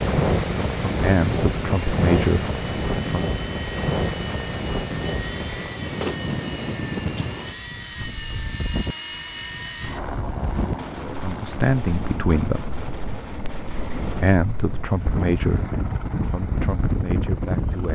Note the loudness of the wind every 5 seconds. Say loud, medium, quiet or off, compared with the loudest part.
loud, medium, medium, loud.